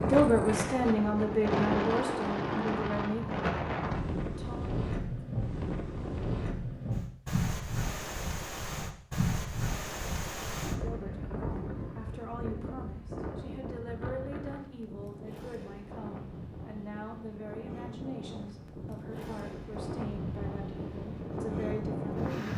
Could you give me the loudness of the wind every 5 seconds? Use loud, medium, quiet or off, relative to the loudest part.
loud, loud, medium, medium, loud.